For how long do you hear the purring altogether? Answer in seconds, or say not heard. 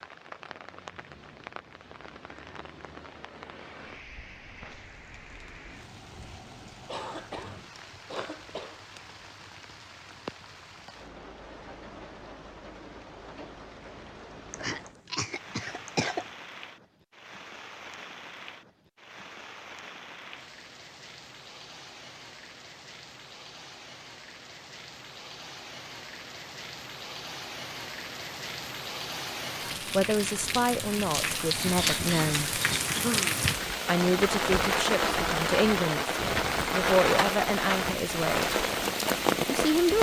not heard.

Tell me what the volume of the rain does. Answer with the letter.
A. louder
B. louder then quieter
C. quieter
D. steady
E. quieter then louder
A.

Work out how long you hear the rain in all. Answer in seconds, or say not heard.
40 s.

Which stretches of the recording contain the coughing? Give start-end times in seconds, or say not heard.
6.8-8.8, 14.5-16.2, 31.6-33.4.